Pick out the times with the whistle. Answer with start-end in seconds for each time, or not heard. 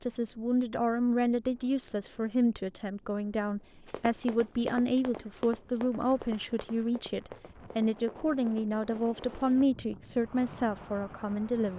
not heard.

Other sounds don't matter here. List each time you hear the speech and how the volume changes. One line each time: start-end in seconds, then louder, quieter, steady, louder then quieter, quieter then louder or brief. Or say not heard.
0.0-11.7 steady.